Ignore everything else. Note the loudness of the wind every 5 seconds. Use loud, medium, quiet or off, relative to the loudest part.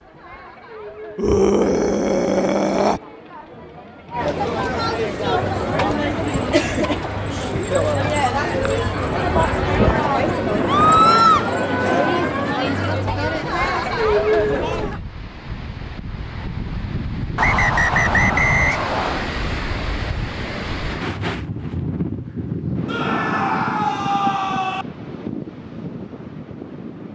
off, loud, loud, loud, loud, medium.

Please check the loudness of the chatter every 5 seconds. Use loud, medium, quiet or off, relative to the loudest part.
medium, loud, loud, off, off, off.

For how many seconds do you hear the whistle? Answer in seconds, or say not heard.
2 s.